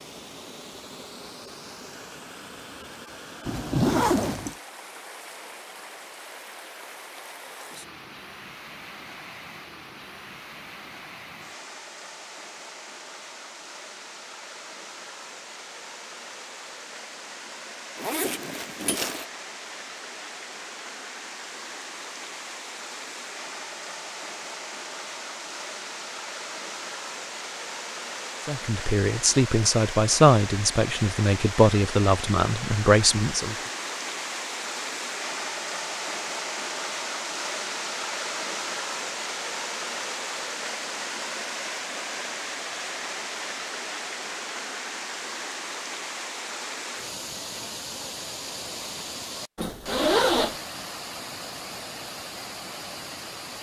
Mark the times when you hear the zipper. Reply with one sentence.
The zipper can be heard from 3.5 to 4.5 s, from 17.9 to 19.2 s and from 49.5 to 50.5 s.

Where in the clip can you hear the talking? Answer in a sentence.
The talking can be heard from 28.4 to 33.5 s.